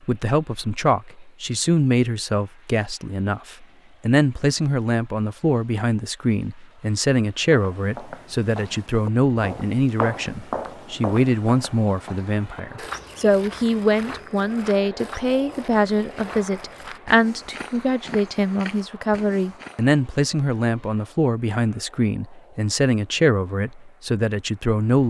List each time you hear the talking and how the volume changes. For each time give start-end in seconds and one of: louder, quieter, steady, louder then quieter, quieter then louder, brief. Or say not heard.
0.1-25.0 steady.